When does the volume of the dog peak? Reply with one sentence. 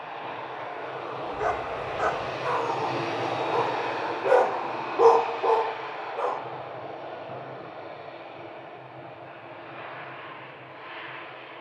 The volume of the dog peaks at 5 seconds.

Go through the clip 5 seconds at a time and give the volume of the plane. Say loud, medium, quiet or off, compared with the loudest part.
loud, medium, medium.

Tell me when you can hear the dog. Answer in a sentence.
The dog can be heard from 1.2 to 6.4 s.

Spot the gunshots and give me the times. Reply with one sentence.
The gunshots can't be heard in this clip.